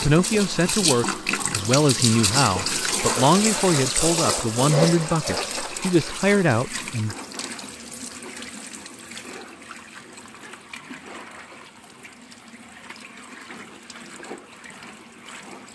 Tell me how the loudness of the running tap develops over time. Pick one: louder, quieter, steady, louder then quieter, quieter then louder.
quieter.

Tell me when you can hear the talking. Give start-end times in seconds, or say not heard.
0.0-7.2.